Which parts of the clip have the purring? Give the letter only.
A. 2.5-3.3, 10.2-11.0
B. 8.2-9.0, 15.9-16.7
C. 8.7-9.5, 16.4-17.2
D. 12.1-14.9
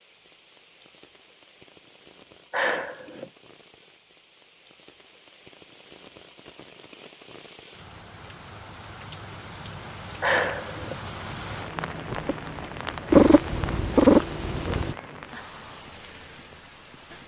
D.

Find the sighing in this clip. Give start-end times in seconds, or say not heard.
2.5-3.3, 10.2-11.0.